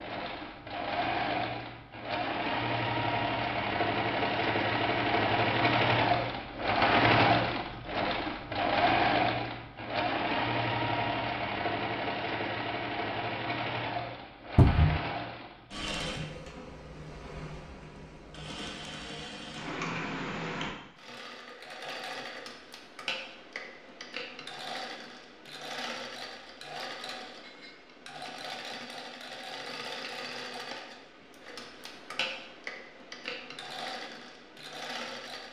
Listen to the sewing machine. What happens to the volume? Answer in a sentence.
The volume of the sewing machine goes down.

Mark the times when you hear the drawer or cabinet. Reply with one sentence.
The drawer or cabinet can be heard from 14.6 to 15.0 s.